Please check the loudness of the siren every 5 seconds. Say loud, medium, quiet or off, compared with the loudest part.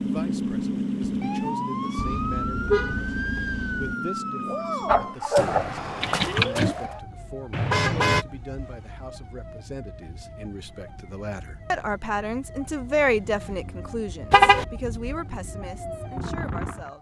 loud, medium, quiet, medium.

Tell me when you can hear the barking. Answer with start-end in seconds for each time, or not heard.
4.8-6.8.